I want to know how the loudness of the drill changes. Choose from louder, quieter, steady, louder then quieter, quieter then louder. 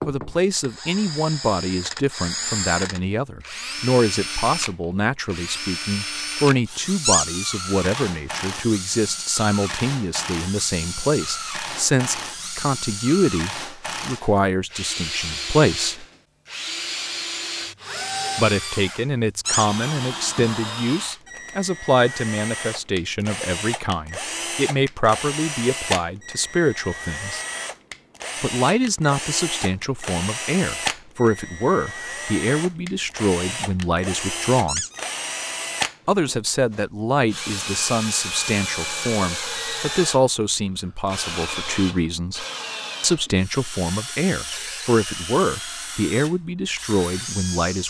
steady.